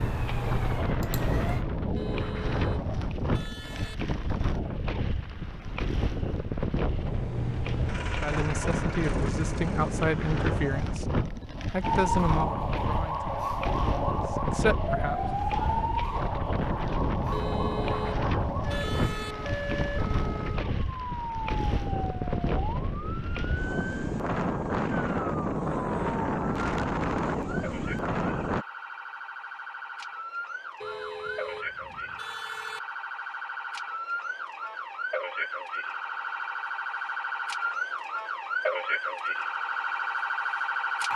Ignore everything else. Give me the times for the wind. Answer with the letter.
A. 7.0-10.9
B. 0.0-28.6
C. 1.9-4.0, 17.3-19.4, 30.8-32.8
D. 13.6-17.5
B.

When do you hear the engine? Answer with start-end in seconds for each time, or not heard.
7.0-10.9.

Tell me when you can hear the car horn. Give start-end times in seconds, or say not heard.
1.9-4.0, 17.3-19.4, 30.8-32.8.